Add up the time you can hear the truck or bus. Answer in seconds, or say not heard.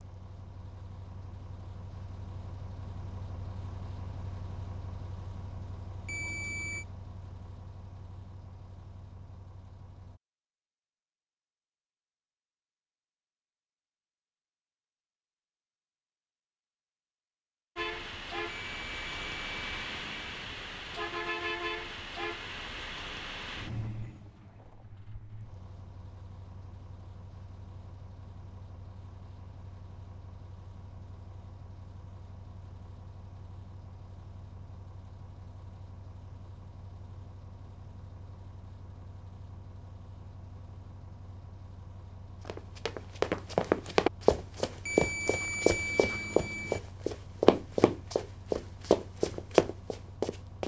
43 s.